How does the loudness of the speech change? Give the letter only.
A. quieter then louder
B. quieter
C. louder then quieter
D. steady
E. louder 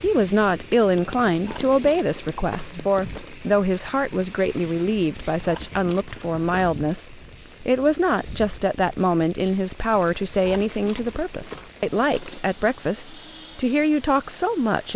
D.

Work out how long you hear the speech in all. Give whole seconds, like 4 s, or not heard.
15 s.